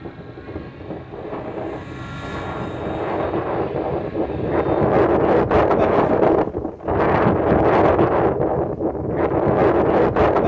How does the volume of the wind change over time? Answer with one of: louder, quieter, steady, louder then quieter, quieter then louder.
louder.